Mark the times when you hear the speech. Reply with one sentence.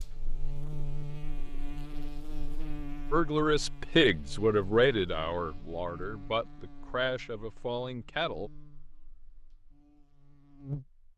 You can hear the speech from 3.1 to 8.5 s.